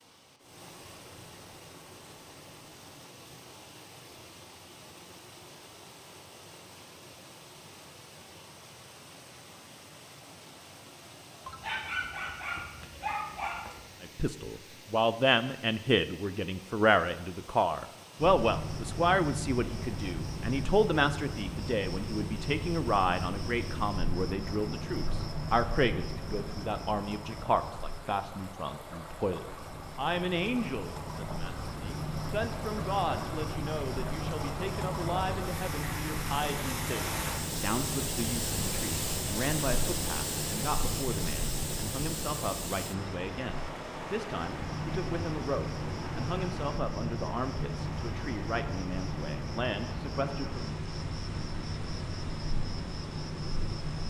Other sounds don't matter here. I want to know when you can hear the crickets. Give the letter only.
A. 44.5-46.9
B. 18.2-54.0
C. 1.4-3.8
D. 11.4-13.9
B.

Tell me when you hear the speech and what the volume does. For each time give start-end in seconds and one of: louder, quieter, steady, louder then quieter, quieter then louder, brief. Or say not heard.
14.0-50.8 quieter.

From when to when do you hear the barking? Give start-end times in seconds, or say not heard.
11.4-13.9.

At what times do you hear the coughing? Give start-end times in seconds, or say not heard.
not heard.